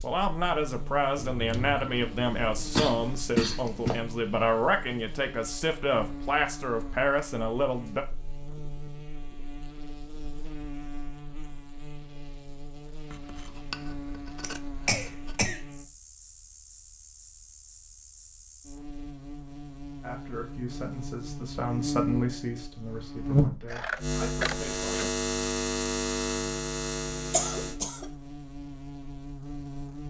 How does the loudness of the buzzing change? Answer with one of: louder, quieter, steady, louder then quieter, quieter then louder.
louder.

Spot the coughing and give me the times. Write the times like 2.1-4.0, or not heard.
2.7-4.0, 14.4-15.6, 27.3-28.1.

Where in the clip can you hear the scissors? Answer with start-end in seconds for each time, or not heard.
1.1-2.8, 13.1-15.4, 23.6-25.1.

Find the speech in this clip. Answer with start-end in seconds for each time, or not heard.
0.0-8.1, 20.0-25.0.